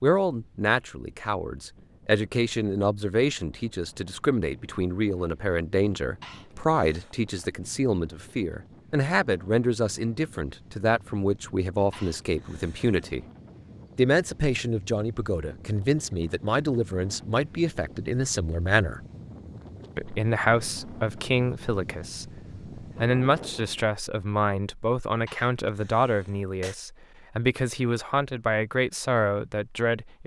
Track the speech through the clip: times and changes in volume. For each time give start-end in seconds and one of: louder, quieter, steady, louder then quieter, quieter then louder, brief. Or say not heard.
0.0-13.2 steady
13.9-19.0 steady
19.9-30.2 steady.